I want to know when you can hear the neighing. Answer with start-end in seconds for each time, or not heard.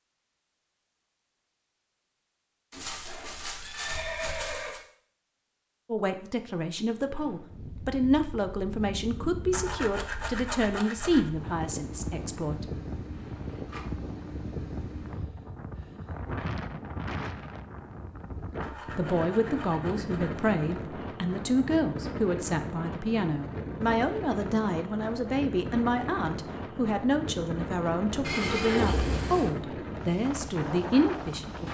2.7-4.8, 13.1-13.8, 28.2-29.5.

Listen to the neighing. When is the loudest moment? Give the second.
29 s.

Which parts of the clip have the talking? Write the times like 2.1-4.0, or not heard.
5.8-12.7, 18.9-31.6.